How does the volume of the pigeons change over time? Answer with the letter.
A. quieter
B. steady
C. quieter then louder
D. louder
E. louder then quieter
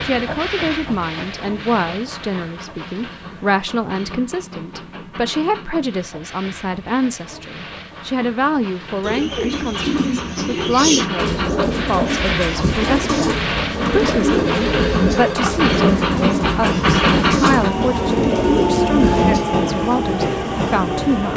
B.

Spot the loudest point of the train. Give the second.
17 s.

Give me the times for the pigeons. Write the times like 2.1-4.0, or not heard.
9.0-19.4.